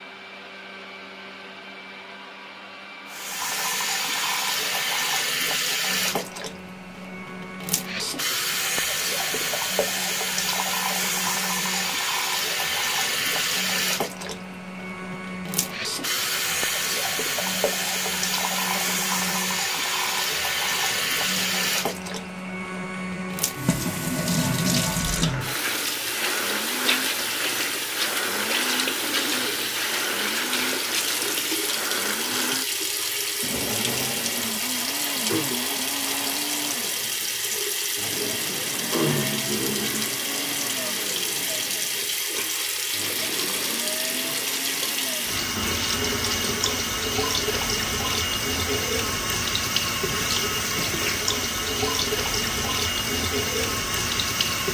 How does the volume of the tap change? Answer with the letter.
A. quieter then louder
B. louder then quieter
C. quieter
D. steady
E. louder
D.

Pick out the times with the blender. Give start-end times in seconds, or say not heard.
0.0-54.6.